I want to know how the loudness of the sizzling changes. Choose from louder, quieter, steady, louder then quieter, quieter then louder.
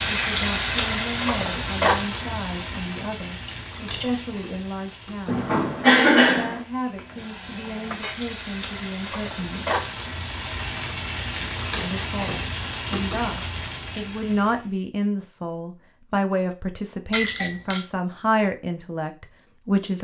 quieter then louder.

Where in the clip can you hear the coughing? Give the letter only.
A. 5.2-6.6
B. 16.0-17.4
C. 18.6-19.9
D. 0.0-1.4
A.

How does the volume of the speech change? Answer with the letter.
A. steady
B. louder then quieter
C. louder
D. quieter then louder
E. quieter
C.